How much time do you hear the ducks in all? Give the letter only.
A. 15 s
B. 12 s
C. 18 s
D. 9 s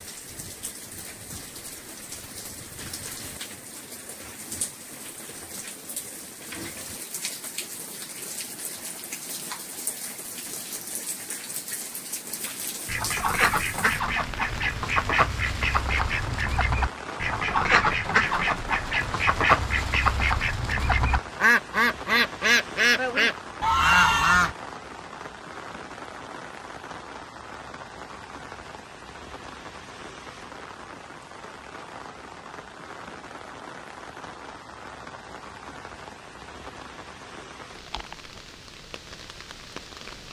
B.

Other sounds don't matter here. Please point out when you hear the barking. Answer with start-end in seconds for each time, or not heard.
not heard.